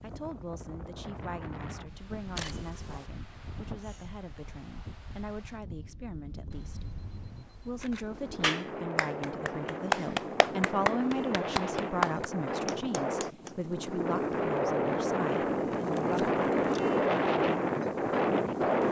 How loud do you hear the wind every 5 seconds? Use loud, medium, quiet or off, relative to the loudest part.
quiet, quiet, medium, loud.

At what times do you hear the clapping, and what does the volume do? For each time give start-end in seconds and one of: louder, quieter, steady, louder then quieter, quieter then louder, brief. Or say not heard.
8.4-13.6 louder then quieter.